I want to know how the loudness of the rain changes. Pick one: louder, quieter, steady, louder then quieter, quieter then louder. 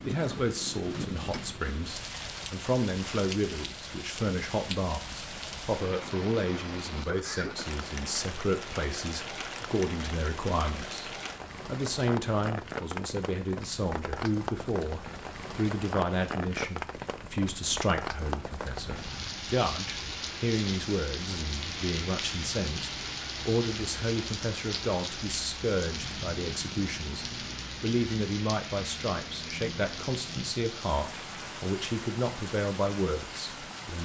steady.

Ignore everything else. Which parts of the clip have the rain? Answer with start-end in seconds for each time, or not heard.
0.0-33.9.